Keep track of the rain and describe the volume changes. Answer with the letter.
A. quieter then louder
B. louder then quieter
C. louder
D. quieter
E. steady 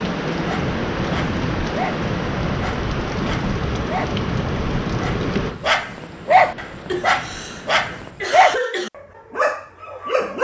D.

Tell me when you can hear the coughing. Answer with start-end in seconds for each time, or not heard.
6.8-8.9.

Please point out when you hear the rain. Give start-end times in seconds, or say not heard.
0.0-8.3.